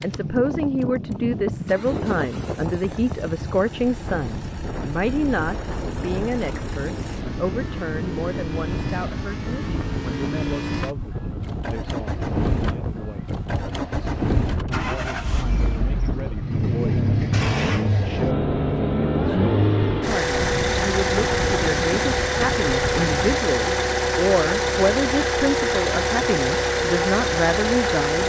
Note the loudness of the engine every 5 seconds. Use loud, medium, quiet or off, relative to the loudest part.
quiet, quiet, medium, loud, loud, loud.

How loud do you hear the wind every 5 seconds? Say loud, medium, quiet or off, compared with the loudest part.
loud, loud, loud, loud, loud, off.